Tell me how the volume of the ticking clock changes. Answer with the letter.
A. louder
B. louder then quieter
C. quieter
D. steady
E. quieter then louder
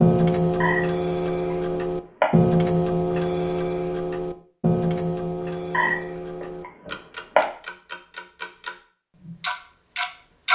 C.